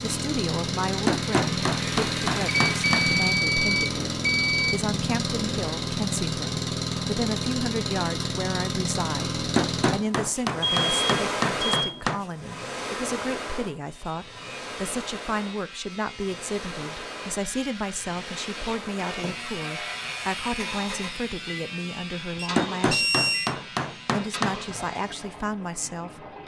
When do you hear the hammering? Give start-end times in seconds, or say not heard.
1.1-3.1, 9.6-12.2, 22.6-24.6.